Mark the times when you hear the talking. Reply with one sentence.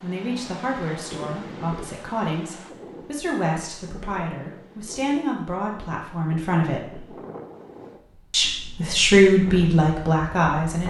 The talking can be heard from 0.0 to 7.0 s and from 8.3 to 10.8 s.